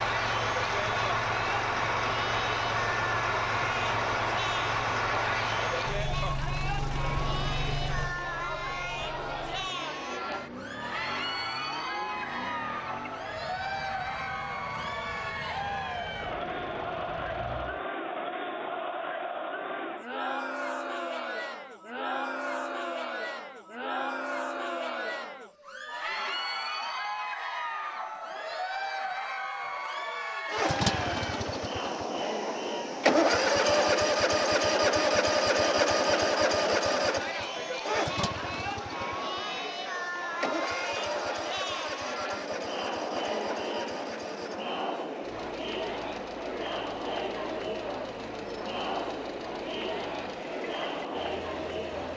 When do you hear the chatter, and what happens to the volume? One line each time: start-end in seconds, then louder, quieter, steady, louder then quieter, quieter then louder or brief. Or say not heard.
0.0-52.1 steady.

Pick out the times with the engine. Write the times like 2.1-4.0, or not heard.
0.0-17.9, 30.4-52.1.